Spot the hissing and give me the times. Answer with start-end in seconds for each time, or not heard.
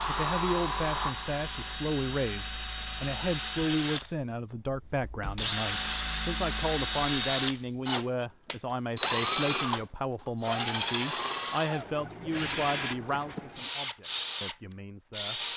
0.0-1.8.